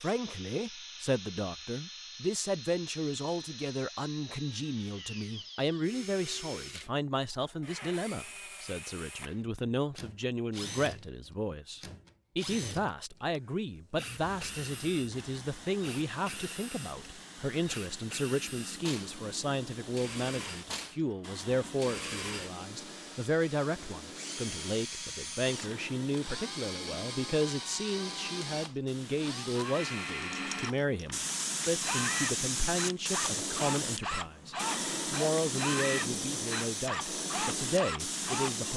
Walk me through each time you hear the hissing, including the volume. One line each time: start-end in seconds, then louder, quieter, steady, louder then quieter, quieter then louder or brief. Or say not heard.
14.0-38.7 louder.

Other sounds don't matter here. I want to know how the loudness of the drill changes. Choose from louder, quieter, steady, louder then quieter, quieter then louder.
louder.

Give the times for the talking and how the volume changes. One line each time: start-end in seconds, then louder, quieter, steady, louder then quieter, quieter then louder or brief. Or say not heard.
0.0-38.7 steady.